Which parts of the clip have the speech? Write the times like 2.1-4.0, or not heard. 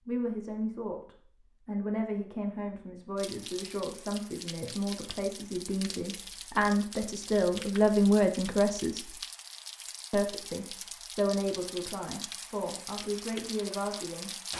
0.1-9.2, 10.1-14.3.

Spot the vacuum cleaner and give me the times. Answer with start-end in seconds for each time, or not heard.
not heard.